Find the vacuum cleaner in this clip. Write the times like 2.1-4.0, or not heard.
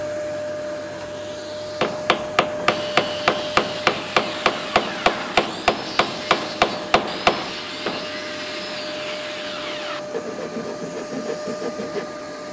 0.0-12.4.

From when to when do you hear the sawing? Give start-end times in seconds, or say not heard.
2.6-12.2.